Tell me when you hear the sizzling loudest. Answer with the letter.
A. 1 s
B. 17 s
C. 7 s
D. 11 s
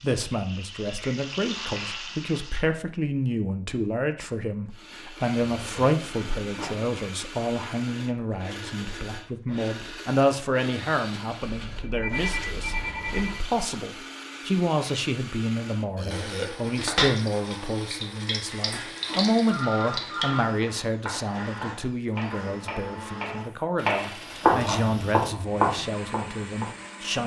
B.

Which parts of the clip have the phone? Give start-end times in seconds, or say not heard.
6.3-6.9, 11.5-13.4, 18.8-20.4.